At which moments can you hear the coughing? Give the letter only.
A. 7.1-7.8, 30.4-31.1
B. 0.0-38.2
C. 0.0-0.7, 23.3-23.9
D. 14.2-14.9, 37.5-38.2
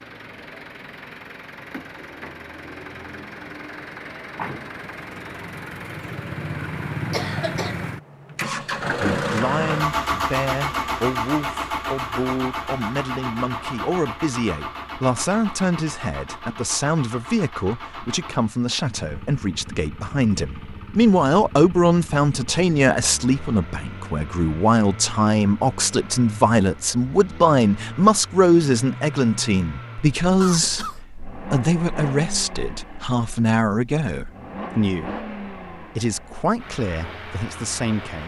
A.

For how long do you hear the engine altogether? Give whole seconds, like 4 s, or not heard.
38 s.